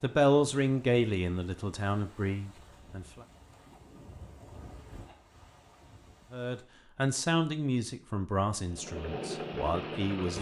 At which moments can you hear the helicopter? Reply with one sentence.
You can hear the helicopter from 8.6 to 10.3 s.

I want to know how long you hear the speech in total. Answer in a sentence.
You can hear the speech for 7 seconds altogether.